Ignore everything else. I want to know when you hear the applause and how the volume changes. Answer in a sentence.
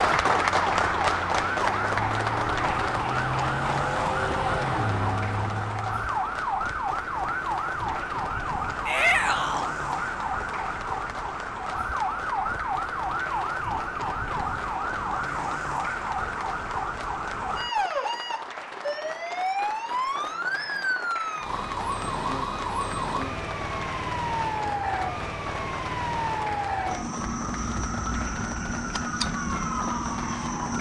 The applause can be heard from 0.0 to 30.7 s, getting quieter.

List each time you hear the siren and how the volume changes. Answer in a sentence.
The siren can be heard from 0.0 to 30.7 s, at a steady volume.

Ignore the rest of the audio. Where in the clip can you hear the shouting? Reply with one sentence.
The shouting can be heard from 8.8 to 9.7 s.